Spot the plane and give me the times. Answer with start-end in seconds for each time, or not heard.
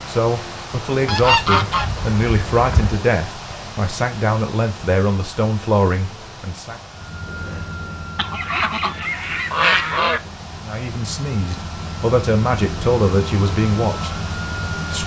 6.9-15.0.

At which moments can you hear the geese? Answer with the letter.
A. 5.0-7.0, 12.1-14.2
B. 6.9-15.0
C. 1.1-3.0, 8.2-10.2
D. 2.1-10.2
C.